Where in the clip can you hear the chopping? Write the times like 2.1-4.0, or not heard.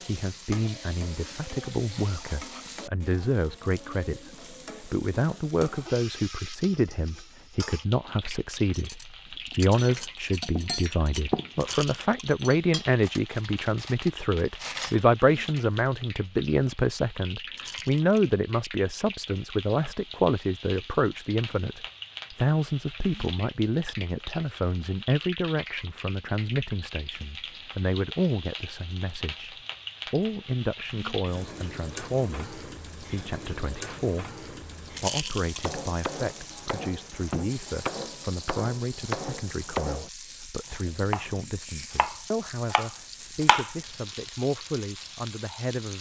35.4-43.8.